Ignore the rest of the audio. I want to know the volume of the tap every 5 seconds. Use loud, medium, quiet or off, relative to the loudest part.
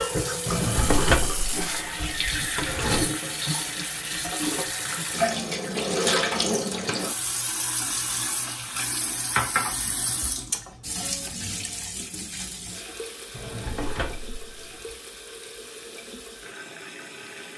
loud, loud, medium, quiet.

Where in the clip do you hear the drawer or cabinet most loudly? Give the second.
1 s.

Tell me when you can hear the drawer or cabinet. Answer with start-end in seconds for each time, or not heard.
0.5-3.1, 13.3-14.7.